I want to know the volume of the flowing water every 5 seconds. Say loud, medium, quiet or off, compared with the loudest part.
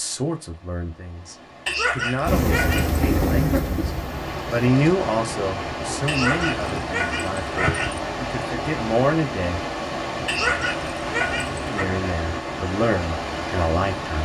medium, loud, loud.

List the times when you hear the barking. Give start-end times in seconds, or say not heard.
1.6-3.0, 6.0-8.0, 10.2-11.7.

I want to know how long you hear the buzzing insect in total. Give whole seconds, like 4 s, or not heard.
2 s.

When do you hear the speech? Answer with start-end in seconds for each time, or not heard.
0.0-9.7, 11.7-14.2.